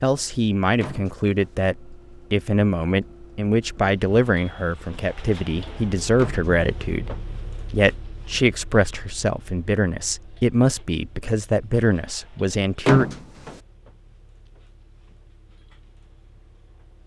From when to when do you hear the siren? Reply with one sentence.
The siren can't be heard in this clip.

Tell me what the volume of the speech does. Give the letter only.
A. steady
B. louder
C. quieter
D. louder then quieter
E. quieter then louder
A.